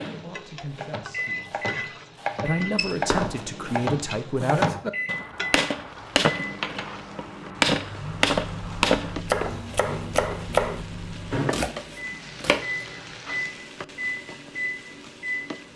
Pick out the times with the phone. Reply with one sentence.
The phone can be heard from 2.8 to 3.5 s.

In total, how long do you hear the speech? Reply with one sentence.
You can hear the speech for 5 seconds altogether.